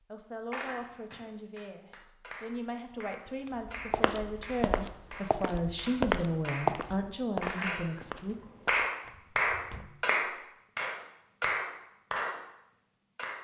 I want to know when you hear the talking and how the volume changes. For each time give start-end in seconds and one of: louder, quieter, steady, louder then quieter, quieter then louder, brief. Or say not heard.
0.0-8.3 louder.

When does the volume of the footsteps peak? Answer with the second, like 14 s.
6 s.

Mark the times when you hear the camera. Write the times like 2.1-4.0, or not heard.
0.5-1.2, 7.4-8.8.